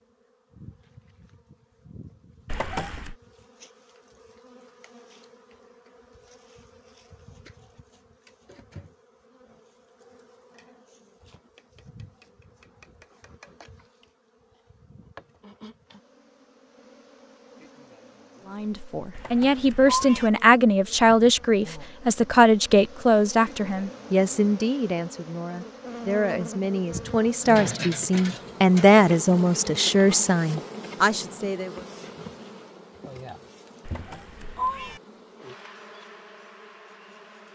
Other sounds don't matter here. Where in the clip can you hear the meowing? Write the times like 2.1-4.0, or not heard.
2.5-3.1, 19.1-20.3, 33.9-35.0.